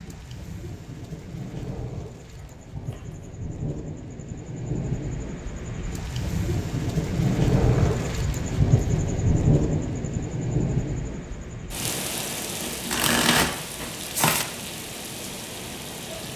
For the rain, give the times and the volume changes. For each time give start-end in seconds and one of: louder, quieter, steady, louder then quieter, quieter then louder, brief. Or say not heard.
0.0-16.3 louder then quieter.